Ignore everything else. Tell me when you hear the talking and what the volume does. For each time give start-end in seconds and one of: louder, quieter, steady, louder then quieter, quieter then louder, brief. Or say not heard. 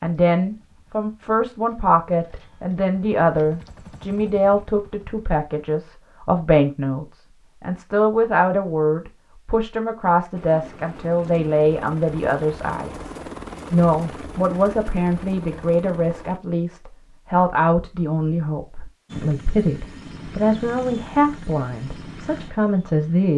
0.0-23.3 steady.